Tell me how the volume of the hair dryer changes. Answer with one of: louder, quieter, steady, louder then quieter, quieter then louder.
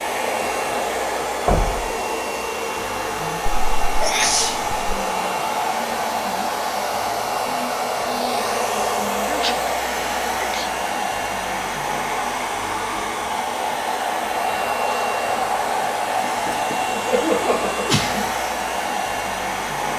steady.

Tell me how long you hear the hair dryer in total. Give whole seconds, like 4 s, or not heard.
20 s.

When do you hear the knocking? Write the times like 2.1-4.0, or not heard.
1.4-1.9, 16.2-16.8.